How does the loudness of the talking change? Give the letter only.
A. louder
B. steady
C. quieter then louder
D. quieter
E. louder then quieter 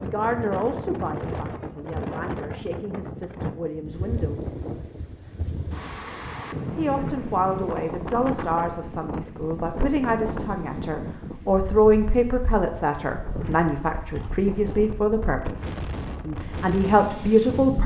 A.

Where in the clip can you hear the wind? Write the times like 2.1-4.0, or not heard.
0.0-17.8.